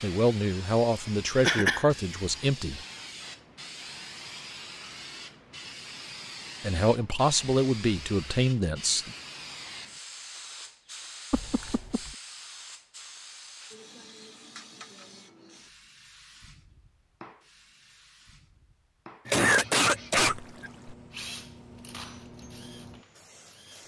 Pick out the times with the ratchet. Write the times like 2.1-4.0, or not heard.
not heard.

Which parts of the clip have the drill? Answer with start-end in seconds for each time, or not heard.
21.1-23.8.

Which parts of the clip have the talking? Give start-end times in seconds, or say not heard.
0.0-2.8, 6.6-9.1.